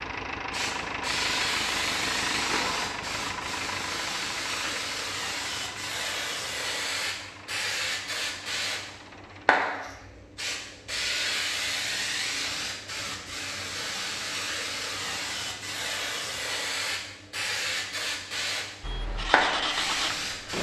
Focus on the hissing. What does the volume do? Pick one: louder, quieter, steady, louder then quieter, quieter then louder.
steady.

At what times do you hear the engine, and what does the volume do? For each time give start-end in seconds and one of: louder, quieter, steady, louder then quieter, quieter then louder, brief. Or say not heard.
0.0-9.7 quieter
18.8-20.5 brief.